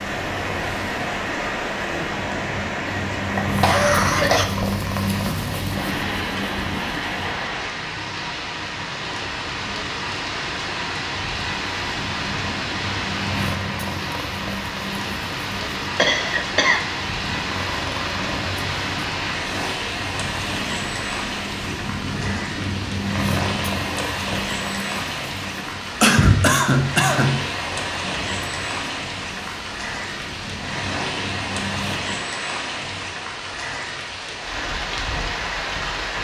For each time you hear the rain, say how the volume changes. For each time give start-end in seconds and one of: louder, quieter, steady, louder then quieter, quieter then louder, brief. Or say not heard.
0.0-36.1 steady.